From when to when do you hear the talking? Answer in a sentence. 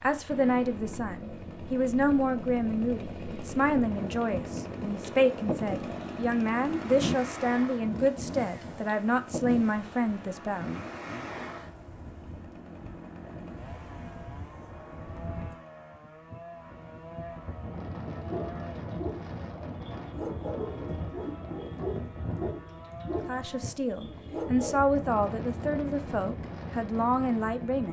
The talking can be heard from 0.0 to 10.7 s and from 23.1 to 27.8 s.